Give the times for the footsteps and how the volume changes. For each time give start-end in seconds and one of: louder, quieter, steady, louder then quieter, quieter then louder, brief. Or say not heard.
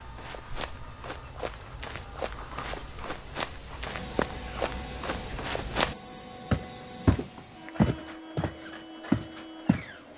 0.0-9.9 louder.